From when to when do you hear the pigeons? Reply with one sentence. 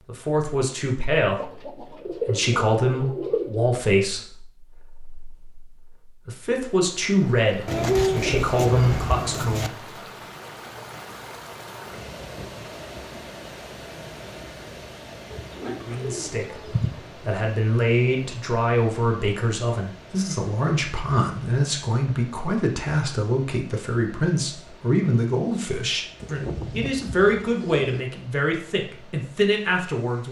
The pigeons can be heard from 1.4 to 3.6 s, from 7.7 to 9.7 s, from 15.3 to 17.1 s and from 26.2 to 28.0 s.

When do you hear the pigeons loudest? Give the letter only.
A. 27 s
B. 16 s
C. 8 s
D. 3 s
C.